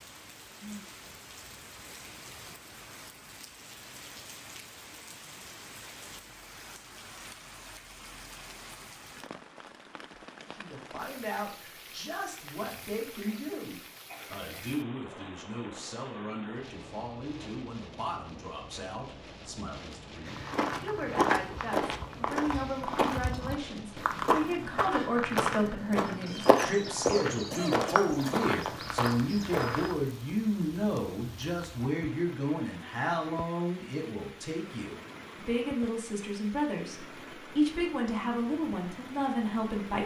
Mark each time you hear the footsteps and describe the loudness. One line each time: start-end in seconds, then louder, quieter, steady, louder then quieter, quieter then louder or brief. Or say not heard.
20.2-29.9 steady.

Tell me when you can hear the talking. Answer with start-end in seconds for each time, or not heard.
10.5-40.0.